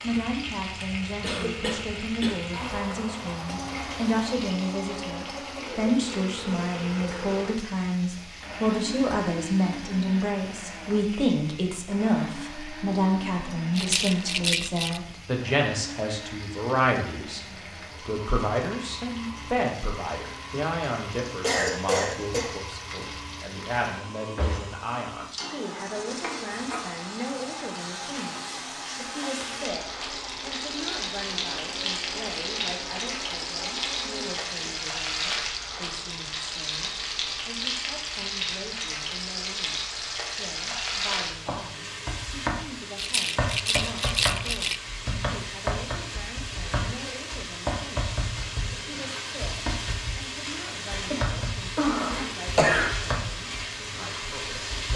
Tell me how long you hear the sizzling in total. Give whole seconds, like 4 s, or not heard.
55 s.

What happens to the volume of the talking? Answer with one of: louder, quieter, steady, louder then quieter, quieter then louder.
quieter.